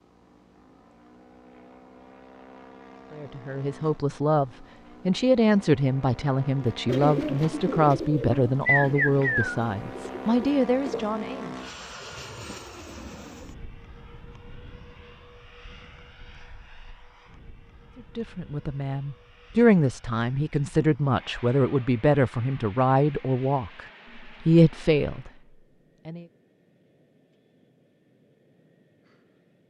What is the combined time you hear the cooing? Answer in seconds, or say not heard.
4 s.